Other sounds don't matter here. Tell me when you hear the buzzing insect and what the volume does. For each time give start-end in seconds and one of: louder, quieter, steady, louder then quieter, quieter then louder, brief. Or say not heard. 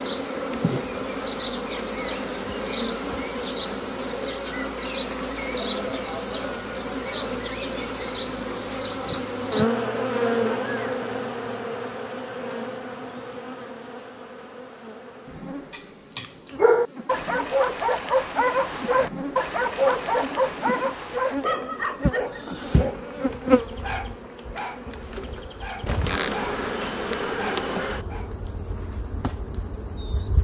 0.0-30.3 quieter then louder.